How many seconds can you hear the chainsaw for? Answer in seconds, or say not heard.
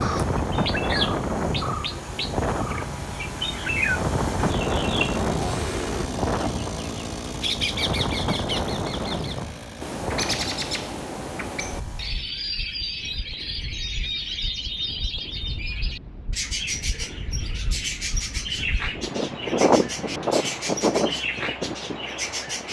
12 s.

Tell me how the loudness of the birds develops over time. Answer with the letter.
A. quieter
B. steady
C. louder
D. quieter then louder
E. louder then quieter
B.